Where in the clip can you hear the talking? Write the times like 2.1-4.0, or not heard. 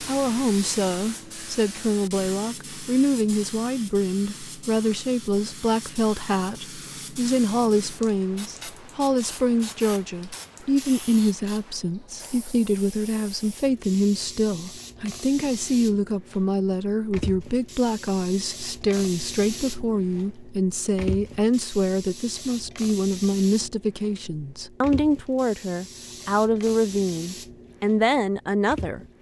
0.0-29.0.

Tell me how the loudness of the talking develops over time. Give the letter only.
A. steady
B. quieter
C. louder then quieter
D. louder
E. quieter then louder
A.